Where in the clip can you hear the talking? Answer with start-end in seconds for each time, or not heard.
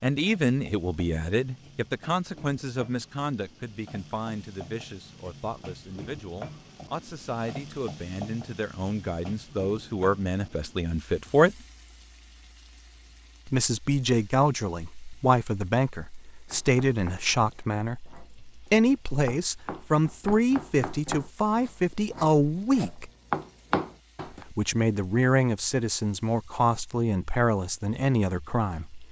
0.0-11.6, 13.4-23.1, 24.4-29.0.